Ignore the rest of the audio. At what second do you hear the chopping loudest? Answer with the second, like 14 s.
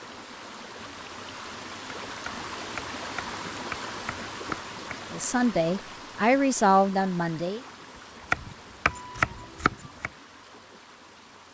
9 s.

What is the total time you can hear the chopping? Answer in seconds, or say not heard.
5 s.